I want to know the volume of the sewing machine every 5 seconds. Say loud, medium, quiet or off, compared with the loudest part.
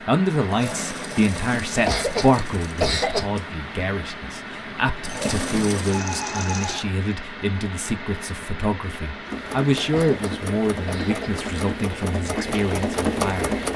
medium, loud, loud.